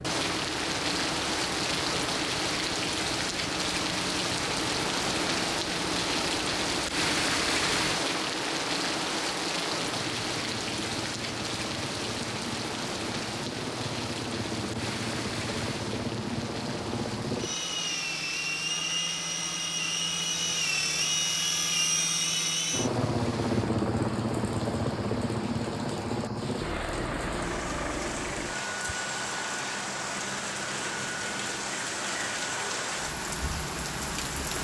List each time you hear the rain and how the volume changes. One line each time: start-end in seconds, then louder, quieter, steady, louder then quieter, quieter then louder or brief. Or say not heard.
0.0-34.5 quieter then louder.